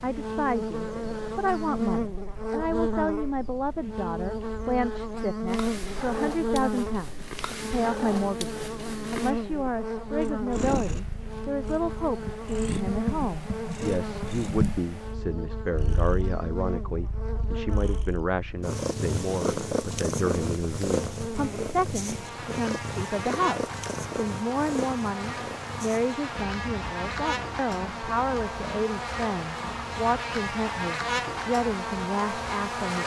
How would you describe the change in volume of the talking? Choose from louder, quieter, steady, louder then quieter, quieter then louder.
steady.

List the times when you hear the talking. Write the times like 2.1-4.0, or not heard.
0.0-33.0.